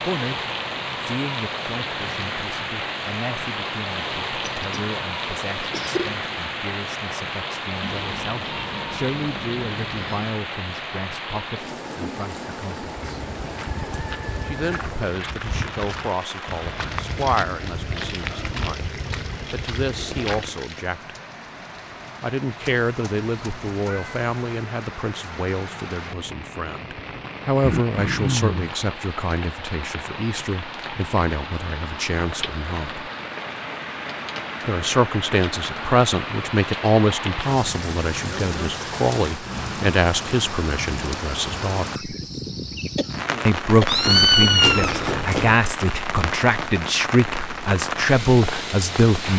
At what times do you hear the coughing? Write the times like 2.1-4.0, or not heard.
4.4-4.8, 5.7-6.2, 27.6-28.8, 43.0-43.9.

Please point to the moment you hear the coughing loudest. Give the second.
28 s.